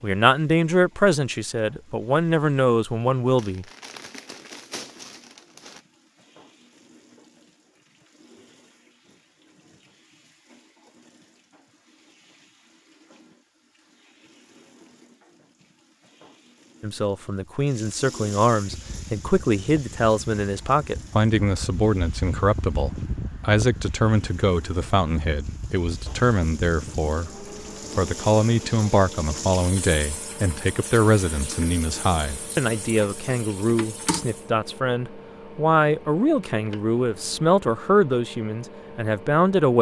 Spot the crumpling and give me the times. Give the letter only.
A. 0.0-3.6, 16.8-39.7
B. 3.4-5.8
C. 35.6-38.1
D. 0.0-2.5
B.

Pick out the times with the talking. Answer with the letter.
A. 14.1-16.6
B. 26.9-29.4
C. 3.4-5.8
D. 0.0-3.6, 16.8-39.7
D.